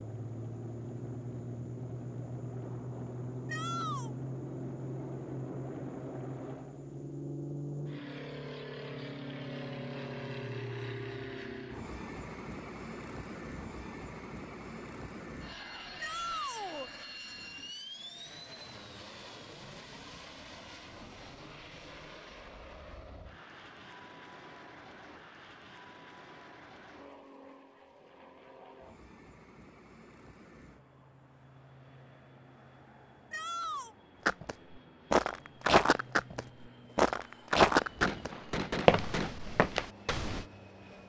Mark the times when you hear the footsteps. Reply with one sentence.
You can hear the footsteps from 34.2 to 40.5 s.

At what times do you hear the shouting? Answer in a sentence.
The shouting can be heard from 3.5 to 4.2 s, from 16.0 to 16.9 s and from 33.3 to 34.0 s.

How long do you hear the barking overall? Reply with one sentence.
You can't hear the barking here.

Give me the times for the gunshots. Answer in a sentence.
You can hear the gunshots from 37.8 to 39.4 s.